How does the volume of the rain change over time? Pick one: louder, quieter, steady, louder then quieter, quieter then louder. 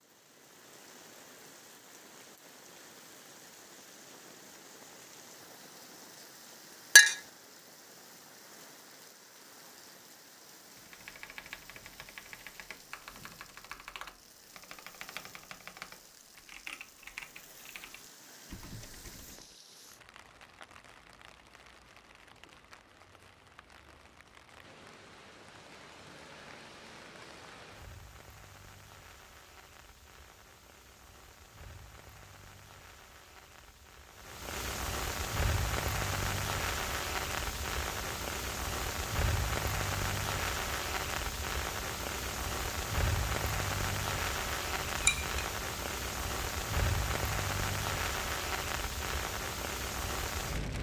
louder.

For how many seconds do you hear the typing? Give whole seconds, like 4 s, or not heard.
9 s.